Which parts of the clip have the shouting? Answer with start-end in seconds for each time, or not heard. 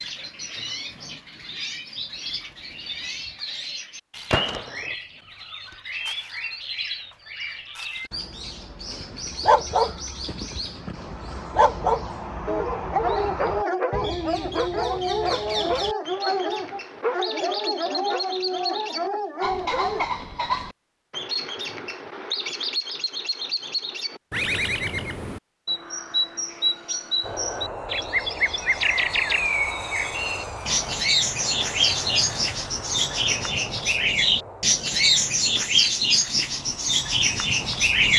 not heard.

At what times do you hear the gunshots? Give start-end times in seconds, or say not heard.
4.3-5.0.